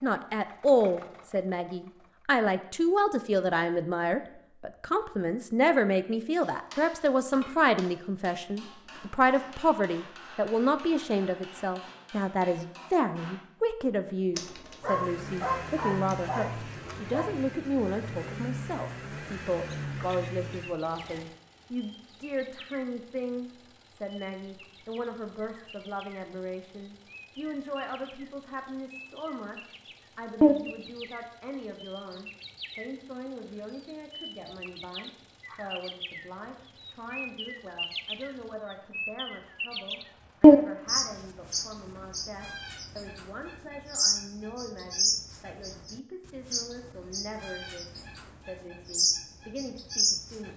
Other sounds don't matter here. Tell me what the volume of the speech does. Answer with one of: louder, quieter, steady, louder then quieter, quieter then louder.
quieter.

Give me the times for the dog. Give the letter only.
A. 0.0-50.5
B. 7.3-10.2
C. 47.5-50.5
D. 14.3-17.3
D.